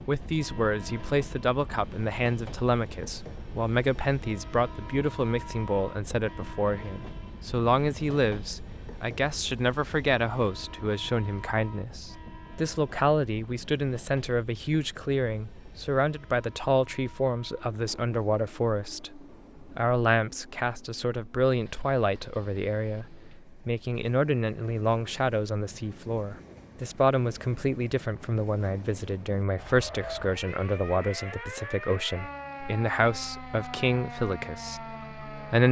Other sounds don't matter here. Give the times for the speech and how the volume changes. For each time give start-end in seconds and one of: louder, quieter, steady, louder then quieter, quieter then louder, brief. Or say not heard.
0.1-35.6 steady.